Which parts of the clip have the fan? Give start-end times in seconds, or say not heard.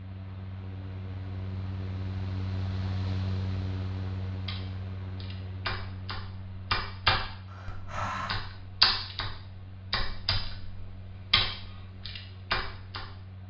0.0-13.4.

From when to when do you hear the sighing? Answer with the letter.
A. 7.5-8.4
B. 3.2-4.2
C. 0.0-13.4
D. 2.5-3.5
A.